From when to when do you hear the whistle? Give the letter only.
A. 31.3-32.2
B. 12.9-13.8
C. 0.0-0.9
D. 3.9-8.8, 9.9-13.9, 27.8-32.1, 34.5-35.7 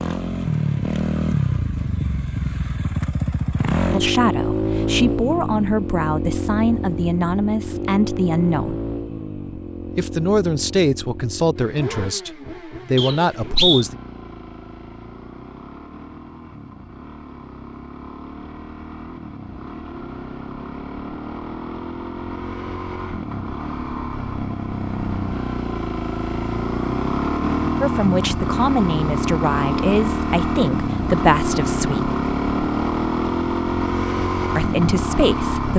B.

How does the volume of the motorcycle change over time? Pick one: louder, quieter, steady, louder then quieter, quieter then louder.
quieter then louder.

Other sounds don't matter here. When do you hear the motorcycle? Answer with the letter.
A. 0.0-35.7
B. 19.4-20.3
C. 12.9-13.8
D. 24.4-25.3
A.